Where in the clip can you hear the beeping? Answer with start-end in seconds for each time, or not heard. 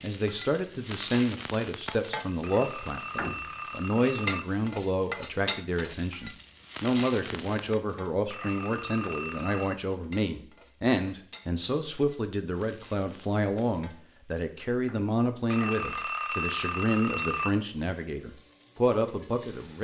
2.4-4.5, 8.3-9.8, 15.5-17.5.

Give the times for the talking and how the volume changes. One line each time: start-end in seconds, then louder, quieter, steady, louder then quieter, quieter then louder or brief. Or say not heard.
0.0-19.7 steady.